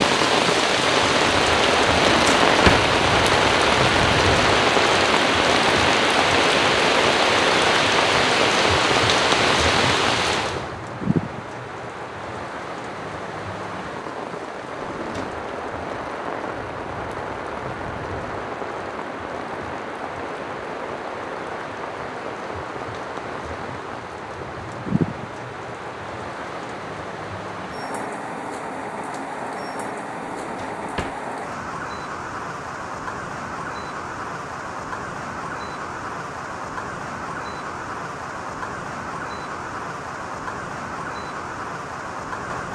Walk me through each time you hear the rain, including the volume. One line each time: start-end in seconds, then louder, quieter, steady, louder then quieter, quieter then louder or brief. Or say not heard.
0.0-42.7 quieter.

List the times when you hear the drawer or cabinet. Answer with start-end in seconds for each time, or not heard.
1.9-2.9, 14.8-15.4, 30.2-31.2.